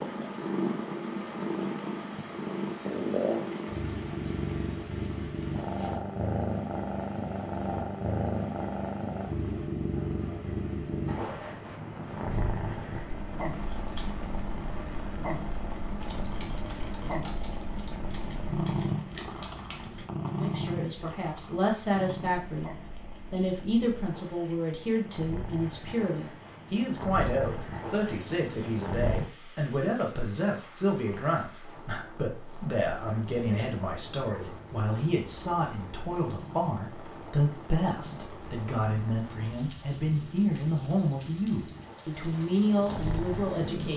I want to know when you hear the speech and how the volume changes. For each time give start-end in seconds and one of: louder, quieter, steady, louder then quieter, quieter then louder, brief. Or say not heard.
20.2-43.9 steady.